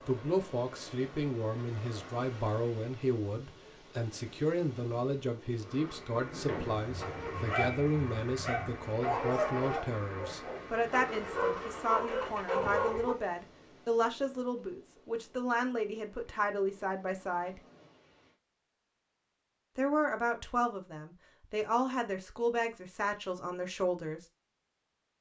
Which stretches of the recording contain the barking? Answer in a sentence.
The barking can be heard from 6.9 to 13.2 s.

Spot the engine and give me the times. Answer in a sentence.
You can hear the engine from 5.5 to 13.2 s.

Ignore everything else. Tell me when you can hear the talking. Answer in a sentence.
You can hear the talking from 0.1 to 17.6 s and from 19.8 to 24.2 s.